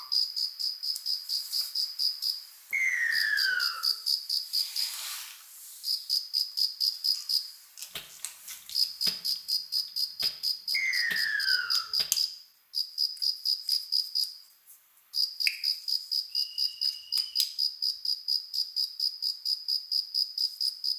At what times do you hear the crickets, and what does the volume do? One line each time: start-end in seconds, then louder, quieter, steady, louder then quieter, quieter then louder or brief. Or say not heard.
0.0-20.9 steady.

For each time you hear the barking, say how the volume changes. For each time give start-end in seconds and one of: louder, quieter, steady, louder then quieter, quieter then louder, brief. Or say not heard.
not heard.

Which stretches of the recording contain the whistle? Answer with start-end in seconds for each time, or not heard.
2.7-3.9, 10.7-11.8, 16.2-17.2.